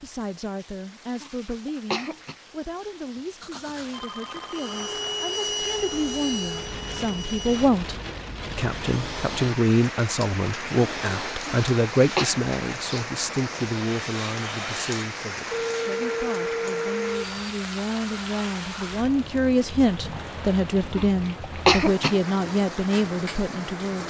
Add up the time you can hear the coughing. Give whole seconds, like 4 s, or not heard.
3 s.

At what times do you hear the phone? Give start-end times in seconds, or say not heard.
3.4-4.8, 15.5-17.6.